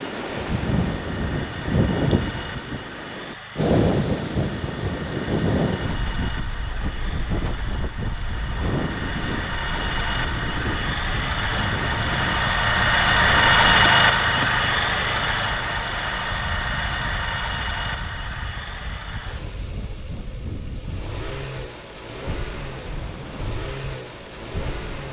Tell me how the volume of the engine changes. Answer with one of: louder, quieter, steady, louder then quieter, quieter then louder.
louder then quieter.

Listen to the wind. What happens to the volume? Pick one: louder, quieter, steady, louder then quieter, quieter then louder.
quieter.